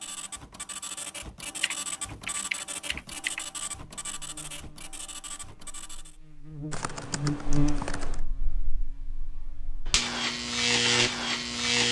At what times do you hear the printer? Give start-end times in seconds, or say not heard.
0.0-6.2.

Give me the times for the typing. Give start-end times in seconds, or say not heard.
1.6-3.5, 6.7-8.2.